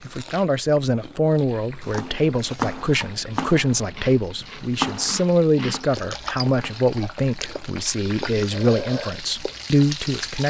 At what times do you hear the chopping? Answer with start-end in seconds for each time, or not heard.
1.9-7.3.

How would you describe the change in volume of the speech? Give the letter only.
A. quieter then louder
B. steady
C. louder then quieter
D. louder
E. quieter
B.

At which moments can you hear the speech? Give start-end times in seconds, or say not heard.
0.1-10.4.